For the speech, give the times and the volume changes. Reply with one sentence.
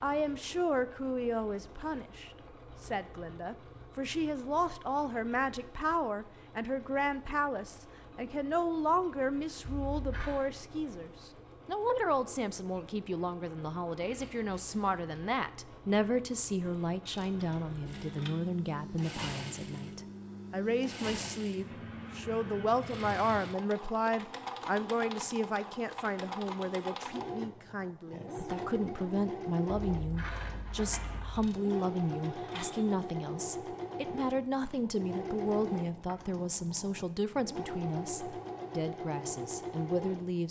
You can hear the speech from 0.0 to 40.4 s, at a steady volume.